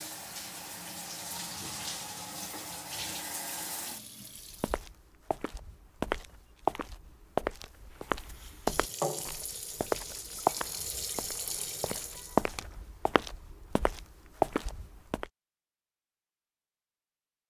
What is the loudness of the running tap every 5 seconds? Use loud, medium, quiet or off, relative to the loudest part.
loud, loud, loud, off.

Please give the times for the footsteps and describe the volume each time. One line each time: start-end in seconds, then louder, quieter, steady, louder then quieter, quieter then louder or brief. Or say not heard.
4.5-15.3 steady.